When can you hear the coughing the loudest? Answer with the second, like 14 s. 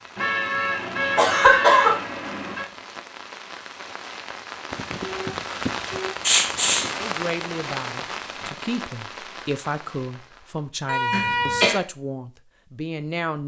2 s.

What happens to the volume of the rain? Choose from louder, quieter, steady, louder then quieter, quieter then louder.
louder then quieter.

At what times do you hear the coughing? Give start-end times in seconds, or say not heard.
1.1-2.0, 6.2-6.9, 11.1-11.8.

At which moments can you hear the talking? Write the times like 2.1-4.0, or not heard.
7.0-13.4.